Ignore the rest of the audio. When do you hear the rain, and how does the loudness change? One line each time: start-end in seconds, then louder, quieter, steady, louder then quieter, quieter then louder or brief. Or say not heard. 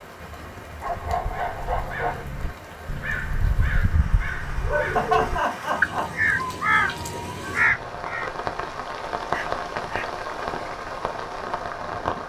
0.0-12.2 louder.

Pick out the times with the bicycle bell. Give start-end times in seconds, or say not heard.
not heard.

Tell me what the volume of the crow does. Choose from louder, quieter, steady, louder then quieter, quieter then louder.
louder.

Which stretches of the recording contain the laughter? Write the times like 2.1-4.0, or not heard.
5.0-6.1.